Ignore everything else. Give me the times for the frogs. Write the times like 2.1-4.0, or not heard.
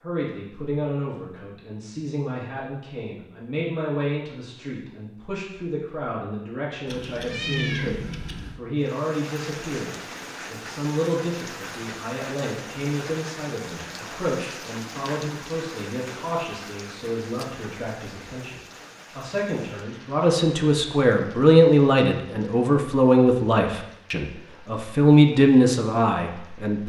not heard.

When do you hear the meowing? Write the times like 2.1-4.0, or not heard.
6.8-8.6.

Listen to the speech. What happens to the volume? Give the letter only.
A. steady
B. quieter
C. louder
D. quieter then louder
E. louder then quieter
C.